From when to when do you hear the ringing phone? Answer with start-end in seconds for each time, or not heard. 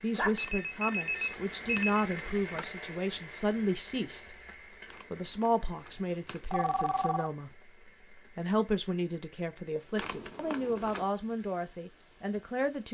0.1-2.0, 6.5-7.3.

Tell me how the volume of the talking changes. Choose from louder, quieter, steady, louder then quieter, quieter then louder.
steady.